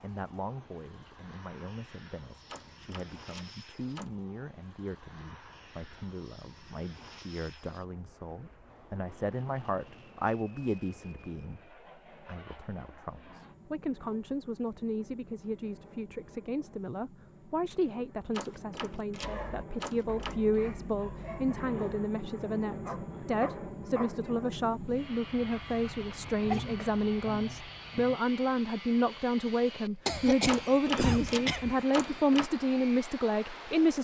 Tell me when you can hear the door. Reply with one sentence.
You can hear the door from 2.5 to 4.2 s, from 18.3 to 20.4 s and from 30.4 to 32.5 s.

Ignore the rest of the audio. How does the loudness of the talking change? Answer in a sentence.
The loudness of the talking goes up.